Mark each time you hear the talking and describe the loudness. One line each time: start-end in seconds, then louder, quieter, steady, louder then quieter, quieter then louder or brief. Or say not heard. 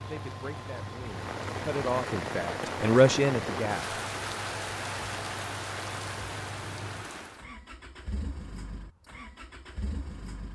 0.0-4.0 louder.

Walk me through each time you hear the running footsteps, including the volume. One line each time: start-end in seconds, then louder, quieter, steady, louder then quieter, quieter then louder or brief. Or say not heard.
not heard.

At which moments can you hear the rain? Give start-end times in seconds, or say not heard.
0.0-7.5.